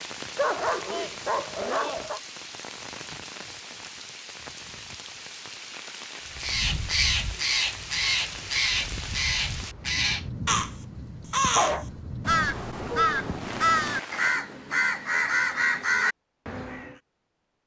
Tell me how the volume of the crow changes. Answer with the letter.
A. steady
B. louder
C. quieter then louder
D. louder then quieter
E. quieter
A.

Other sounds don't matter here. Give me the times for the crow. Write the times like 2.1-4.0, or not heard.
6.3-16.9.